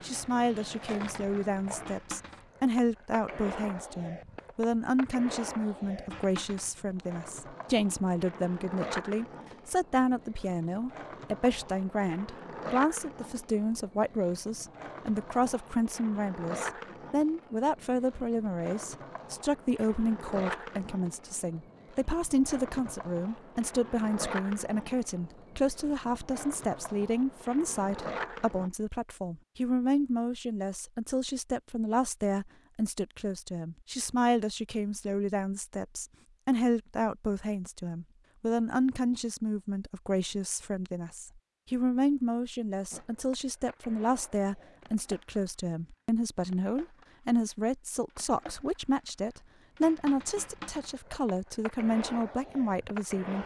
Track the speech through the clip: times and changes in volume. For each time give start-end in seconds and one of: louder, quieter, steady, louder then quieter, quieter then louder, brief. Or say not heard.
0.0-53.4 steady.